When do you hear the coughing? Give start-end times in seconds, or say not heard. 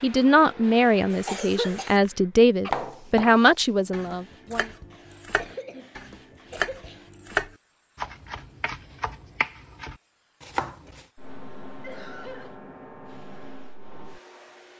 1.1-1.9, 5.3-5.9, 6.5-7.0, 11.8-12.6.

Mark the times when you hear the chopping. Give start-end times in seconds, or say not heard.
2.7-11.1.